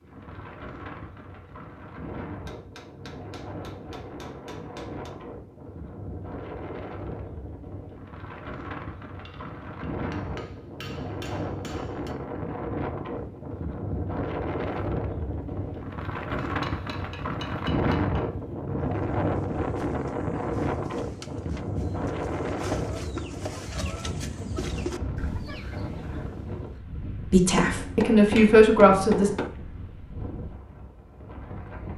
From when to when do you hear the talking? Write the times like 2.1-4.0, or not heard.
27.3-29.3.